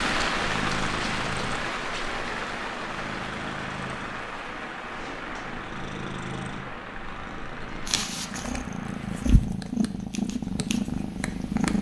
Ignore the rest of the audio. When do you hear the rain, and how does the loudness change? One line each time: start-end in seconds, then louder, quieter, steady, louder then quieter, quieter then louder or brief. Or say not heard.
0.0-9.3 quieter.